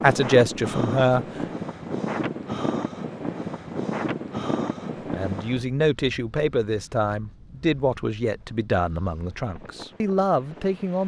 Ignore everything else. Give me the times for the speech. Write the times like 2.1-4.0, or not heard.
0.0-1.2, 5.1-11.0.